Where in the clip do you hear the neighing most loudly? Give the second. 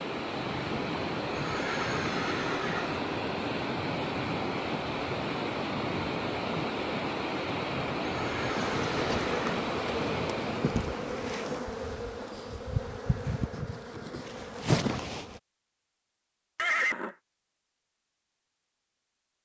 17 s.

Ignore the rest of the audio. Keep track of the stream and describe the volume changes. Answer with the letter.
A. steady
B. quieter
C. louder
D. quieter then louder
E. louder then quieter
A.